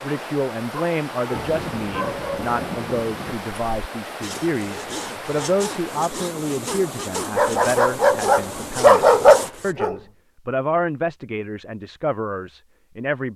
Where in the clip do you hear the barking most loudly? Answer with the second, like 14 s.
9 s.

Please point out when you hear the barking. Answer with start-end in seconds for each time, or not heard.
0.8-2.5, 7.3-9.9.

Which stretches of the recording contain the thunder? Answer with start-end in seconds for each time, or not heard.
1.3-3.4.